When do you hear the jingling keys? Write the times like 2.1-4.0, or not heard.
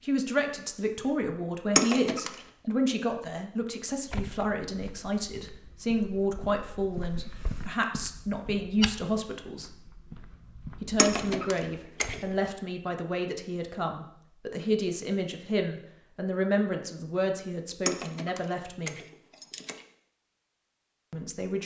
1.8-2.3, 10.9-12.2, 17.9-19.8.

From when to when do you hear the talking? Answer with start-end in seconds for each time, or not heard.
0.0-9.7, 10.8-18.9, 21.1-21.6.